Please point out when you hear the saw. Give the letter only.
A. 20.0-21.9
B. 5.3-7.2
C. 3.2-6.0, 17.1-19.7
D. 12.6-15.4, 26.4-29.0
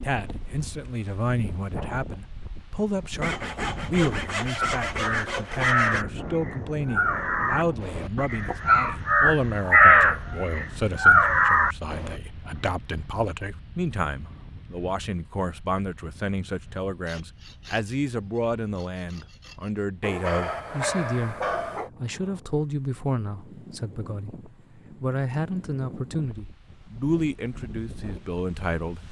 C.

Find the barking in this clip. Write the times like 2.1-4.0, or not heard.
20.0-21.9.